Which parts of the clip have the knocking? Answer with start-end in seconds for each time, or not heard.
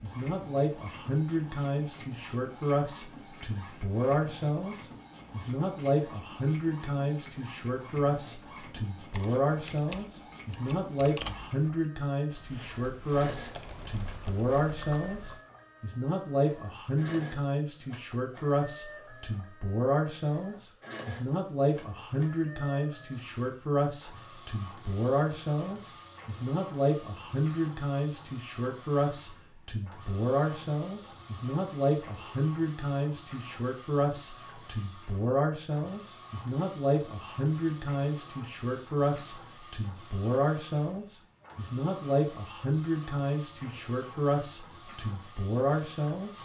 not heard.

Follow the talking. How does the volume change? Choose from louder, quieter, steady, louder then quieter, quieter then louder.
steady.